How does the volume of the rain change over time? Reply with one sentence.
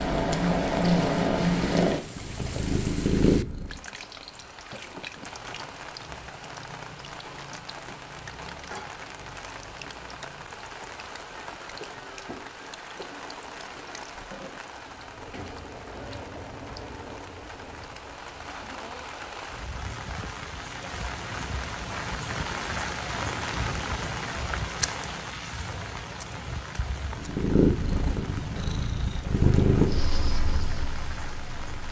The volume of the rain goes up, then down.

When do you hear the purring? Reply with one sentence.
You can hear the purring from 0.0 to 3.8 s and from 27.1 to 31.8 s.